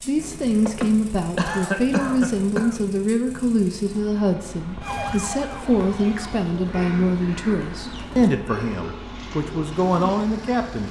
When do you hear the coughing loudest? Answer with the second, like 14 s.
2 s.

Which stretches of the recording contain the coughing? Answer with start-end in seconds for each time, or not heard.
0.7-2.8, 6.7-9.0.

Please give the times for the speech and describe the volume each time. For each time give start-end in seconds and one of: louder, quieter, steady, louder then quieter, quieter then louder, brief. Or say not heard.
0.1-10.8 steady.